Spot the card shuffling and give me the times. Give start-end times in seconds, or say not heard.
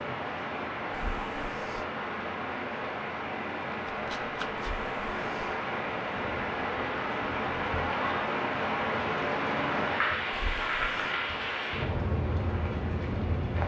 3.9-4.8.